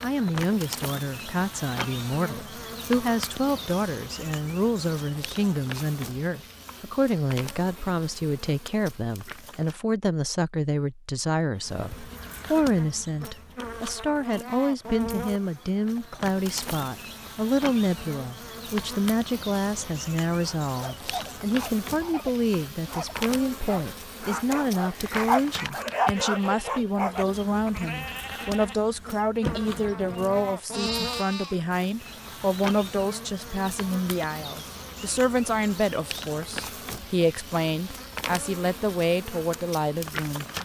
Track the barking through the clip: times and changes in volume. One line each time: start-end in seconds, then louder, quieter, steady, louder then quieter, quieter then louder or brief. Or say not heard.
20.4-27.2 louder.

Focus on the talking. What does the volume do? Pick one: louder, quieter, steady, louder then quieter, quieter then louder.
steady.